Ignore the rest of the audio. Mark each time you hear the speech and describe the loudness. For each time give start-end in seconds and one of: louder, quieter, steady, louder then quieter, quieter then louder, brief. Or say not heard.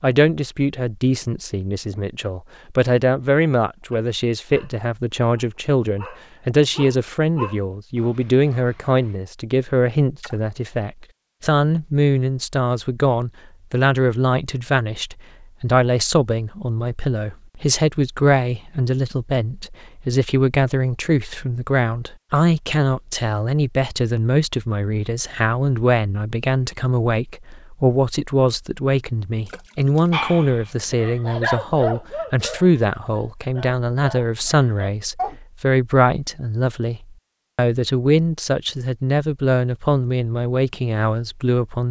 0.0-41.8 steady.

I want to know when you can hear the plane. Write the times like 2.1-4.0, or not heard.
not heard.